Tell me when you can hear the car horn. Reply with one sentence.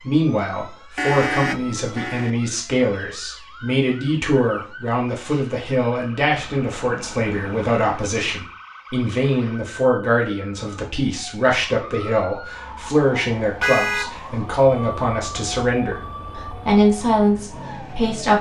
You can hear the car horn from 0.9 to 2.3 s, from 6.3 to 8.3 s and from 13.6 to 14.2 s.